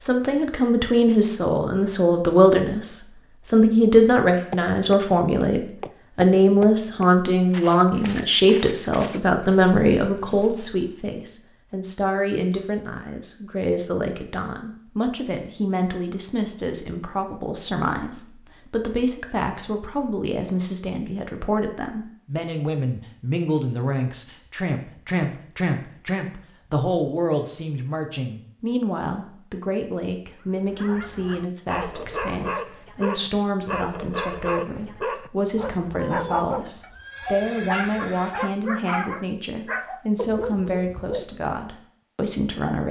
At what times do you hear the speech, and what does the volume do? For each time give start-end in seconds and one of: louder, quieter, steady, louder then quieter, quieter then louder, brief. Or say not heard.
0.0-42.8 quieter.